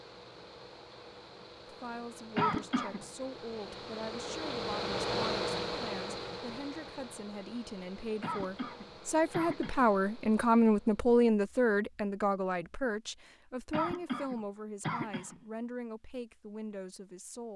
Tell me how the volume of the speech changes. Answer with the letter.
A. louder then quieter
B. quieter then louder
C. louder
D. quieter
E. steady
A.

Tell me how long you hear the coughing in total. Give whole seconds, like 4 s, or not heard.
4 s.